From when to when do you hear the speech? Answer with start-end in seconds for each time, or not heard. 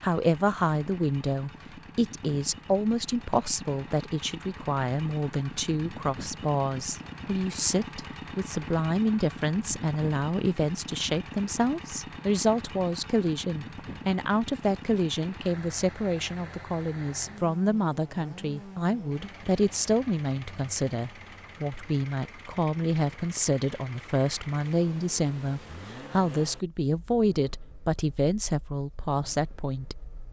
0.0-29.9.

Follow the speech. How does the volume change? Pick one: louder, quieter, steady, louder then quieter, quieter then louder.
steady.